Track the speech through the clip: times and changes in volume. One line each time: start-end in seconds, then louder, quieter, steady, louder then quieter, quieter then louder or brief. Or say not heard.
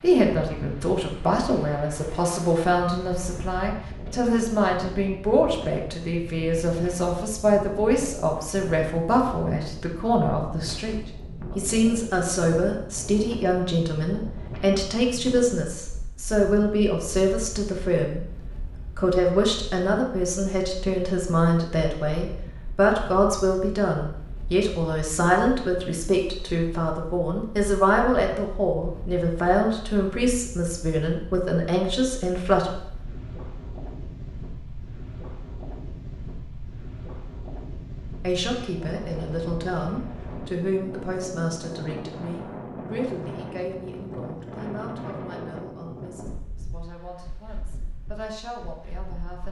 0.0-18.2 steady
18.9-32.7 steady
38.2-49.4 quieter.